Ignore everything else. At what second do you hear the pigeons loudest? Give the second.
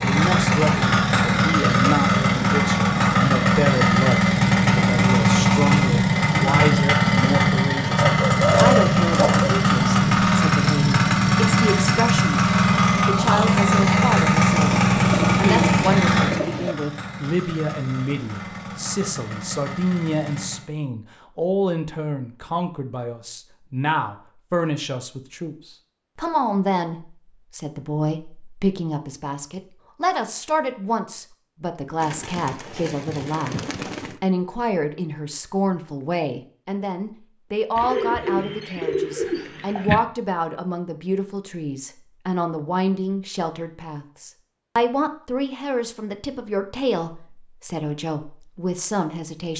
9 s.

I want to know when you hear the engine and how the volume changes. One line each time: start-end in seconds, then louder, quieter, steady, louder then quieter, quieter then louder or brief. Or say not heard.
0.0-20.7 quieter.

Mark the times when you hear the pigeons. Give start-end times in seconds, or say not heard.
8.0-9.6, 14.8-16.8, 32.0-34.1, 37.8-40.0.